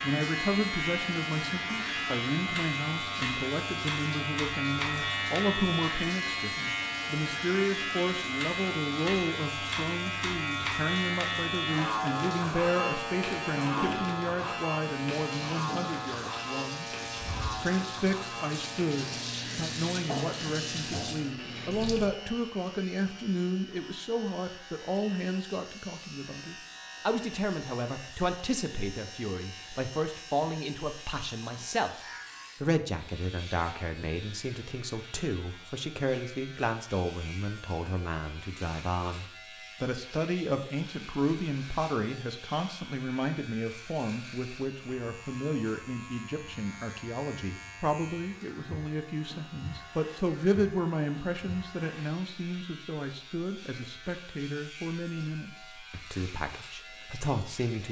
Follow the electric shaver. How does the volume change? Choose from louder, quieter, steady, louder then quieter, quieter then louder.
quieter.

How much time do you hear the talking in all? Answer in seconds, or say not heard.
57 s.